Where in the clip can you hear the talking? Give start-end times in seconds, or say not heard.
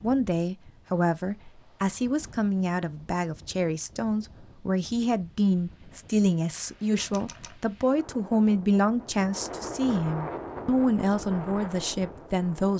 0.0-12.7.